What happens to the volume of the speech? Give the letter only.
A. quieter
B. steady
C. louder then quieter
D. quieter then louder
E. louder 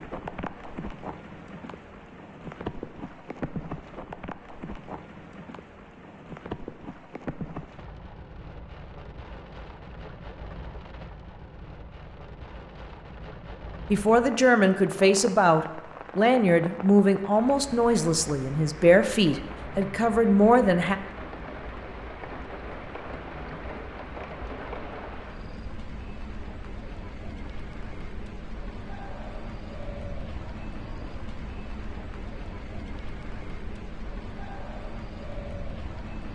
B.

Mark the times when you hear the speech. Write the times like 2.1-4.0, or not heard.
13.9-20.9.